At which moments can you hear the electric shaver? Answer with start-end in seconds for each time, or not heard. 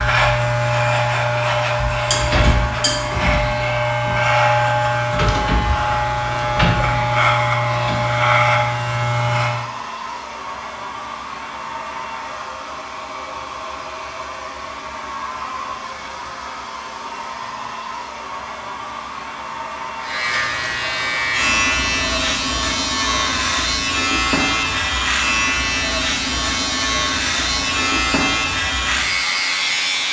0.0-9.7, 20.0-30.0.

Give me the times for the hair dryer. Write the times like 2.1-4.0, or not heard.
0.1-30.0.